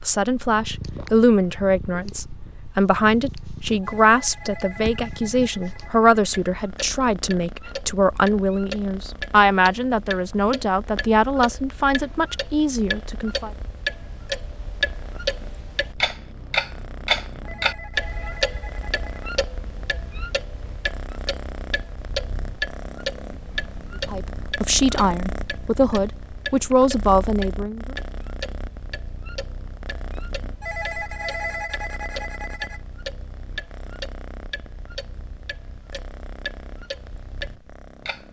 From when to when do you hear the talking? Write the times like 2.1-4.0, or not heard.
0.1-13.5, 24.1-27.9.